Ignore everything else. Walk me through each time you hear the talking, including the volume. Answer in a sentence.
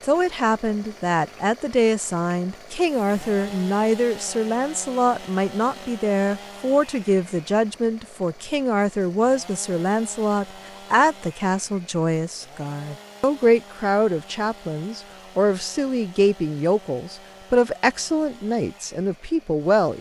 You can hear the talking from 0.0 to 19.9 s, at a steady volume.